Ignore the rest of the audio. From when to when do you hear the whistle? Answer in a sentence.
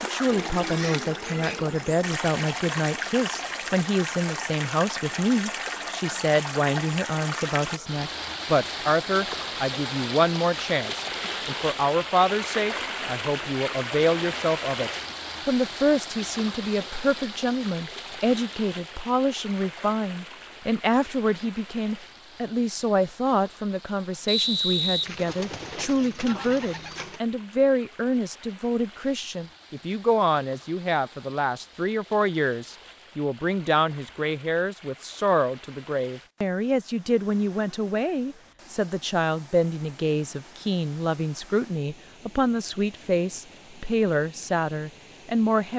The whistle can be heard from 24.2 to 25.8 s.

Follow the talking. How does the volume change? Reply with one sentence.
The loudness of the talking stays about the same.